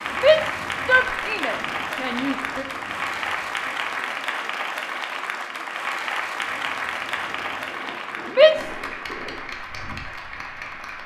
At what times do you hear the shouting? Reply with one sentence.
The shouting can be heard from 0.1 to 2.6 s and from 8.3 to 8.8 s.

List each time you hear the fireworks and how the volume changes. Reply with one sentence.
You can't hear the fireworks here.